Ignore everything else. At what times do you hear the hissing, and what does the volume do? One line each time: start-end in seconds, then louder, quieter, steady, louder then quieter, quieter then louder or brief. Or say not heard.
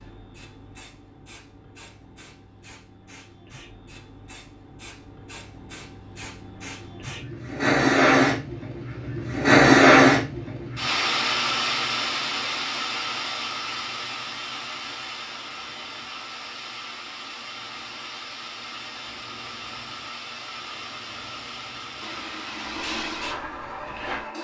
0.0-24.4 louder then quieter.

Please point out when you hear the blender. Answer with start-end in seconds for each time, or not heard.
22.0-24.4.